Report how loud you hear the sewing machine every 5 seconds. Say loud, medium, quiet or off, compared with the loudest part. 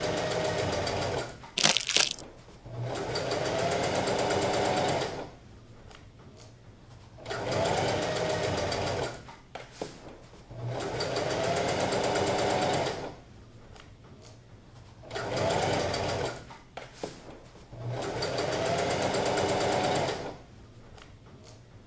loud, loud, loud, loud, medium.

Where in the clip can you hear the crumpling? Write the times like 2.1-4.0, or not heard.
1.6-2.2.